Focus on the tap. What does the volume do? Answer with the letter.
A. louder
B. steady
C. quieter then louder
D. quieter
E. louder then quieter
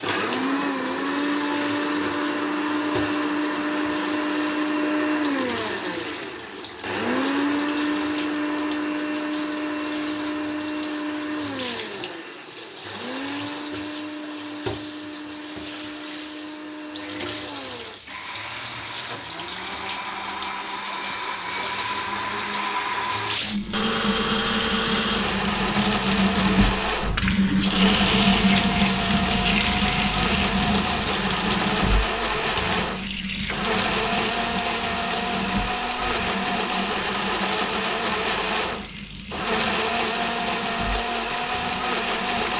E.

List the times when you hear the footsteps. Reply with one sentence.
You can't hear the footsteps here.